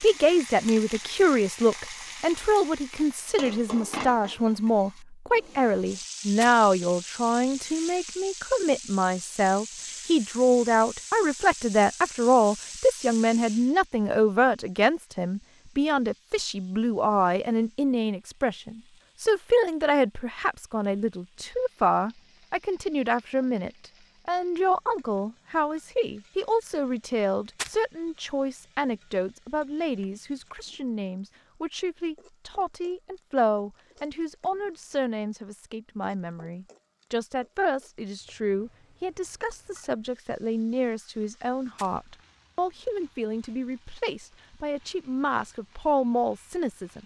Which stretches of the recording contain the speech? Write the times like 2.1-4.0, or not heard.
0.0-47.0.